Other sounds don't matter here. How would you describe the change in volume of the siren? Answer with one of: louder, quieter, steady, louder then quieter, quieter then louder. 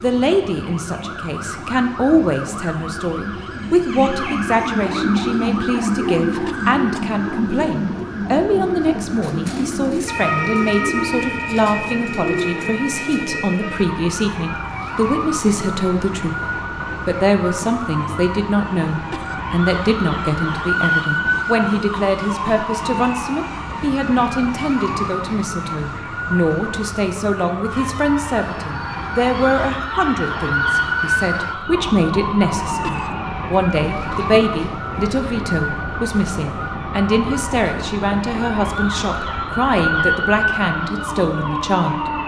steady.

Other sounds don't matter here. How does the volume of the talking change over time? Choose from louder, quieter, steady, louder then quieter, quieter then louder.
steady.